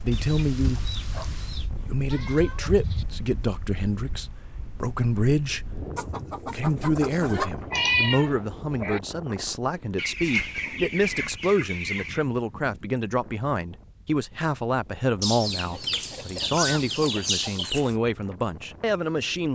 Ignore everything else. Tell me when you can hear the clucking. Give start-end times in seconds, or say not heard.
0.1-1.7, 6.0-7.5, 9.9-12.2, 15.2-17.9.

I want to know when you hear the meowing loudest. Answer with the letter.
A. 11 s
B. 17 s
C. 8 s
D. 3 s
C.